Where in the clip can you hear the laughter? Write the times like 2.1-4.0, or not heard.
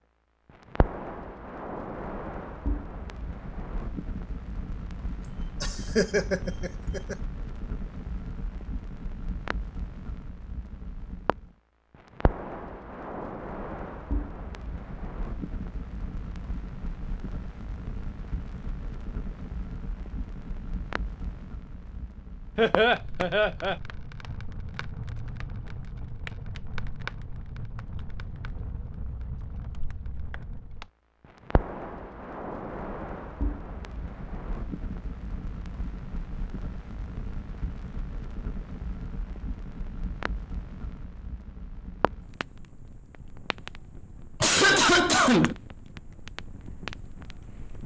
5.6-7.2, 22.6-23.8, 44.4-45.5.